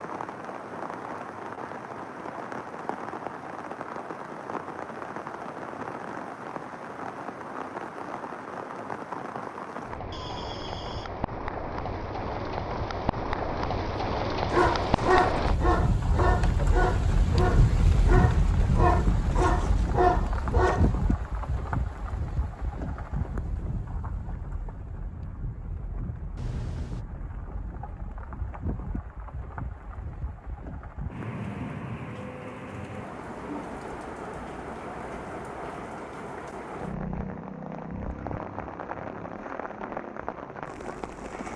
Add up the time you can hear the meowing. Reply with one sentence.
You can hear the meowing for 2 seconds altogether.